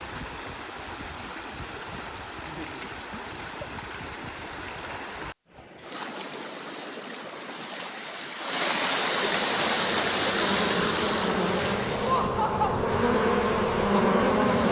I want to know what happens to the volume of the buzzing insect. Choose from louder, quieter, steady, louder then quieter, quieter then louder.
louder.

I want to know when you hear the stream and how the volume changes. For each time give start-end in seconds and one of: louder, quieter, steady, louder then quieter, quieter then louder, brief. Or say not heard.
0.0-12.3 louder.